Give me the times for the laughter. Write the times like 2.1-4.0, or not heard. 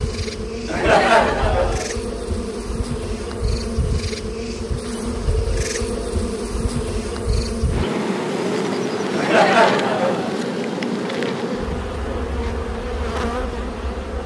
0.7-1.9, 9.1-10.3.